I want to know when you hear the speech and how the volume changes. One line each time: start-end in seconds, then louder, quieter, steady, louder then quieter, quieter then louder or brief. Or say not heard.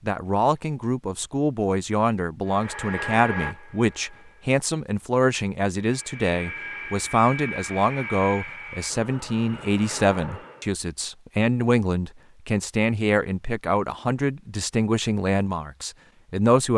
0.0-16.7 steady.